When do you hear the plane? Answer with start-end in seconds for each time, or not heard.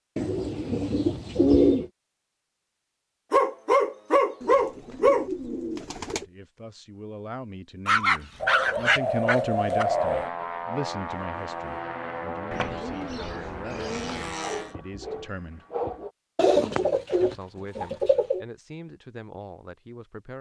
9.8-14.8.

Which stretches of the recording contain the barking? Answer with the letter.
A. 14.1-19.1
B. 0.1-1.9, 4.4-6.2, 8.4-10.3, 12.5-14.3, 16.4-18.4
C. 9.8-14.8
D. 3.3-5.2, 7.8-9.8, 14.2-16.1
D.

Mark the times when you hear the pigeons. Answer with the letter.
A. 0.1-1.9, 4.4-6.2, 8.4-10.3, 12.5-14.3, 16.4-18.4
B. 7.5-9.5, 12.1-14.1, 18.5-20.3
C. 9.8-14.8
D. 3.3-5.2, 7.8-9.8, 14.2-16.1
A.